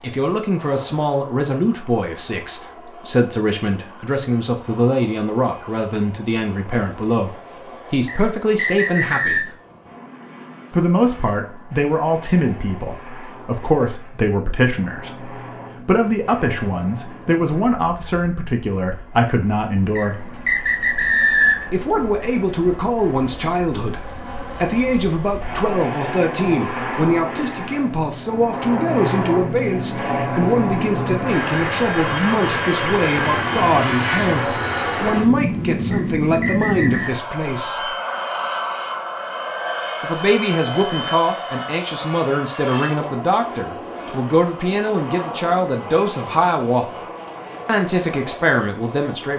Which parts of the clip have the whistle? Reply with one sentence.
The whistle can be heard from 8.1 to 9.4 s, from 19.9 to 21.8 s and from 35.9 to 37.1 s.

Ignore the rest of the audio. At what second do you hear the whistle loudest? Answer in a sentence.
The volume of the whistle peaks at 21 seconds.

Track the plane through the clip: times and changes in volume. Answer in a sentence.
You can hear the plane from 0.0 to 49.3 s, getting louder then quieter.